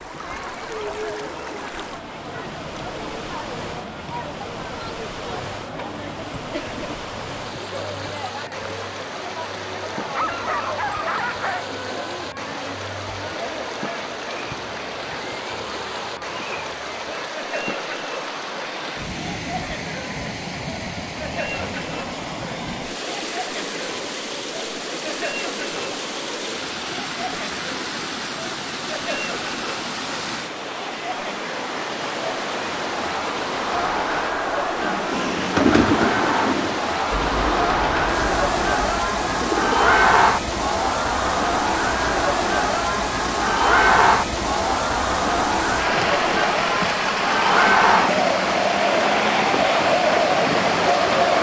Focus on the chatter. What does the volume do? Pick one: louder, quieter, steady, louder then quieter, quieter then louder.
louder.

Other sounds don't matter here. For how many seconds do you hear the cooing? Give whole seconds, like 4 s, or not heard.
5 s.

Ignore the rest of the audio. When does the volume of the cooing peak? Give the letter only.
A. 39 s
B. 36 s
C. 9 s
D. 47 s
B.